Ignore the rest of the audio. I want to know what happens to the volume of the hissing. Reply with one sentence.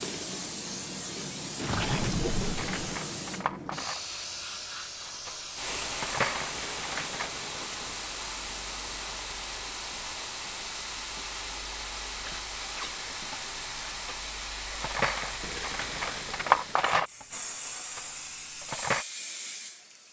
The volume of the hissing stays about the same.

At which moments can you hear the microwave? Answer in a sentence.
The microwave can't be heard in this clip.